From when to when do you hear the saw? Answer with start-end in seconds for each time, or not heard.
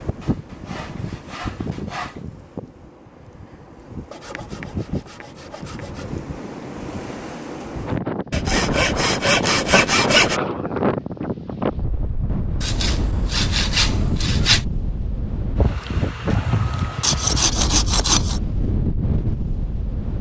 0.2-2.2, 4.1-6.0, 8.3-10.4, 12.6-14.7, 16.4-18.4.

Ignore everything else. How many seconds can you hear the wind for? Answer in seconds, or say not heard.
20 s.